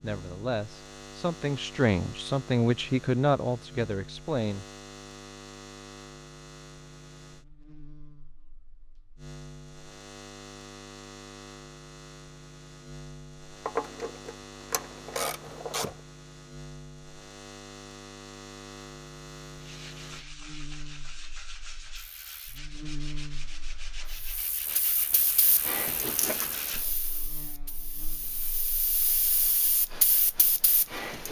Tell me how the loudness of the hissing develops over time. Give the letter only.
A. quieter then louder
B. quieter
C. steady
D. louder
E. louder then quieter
A.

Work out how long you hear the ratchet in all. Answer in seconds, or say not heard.
2 s.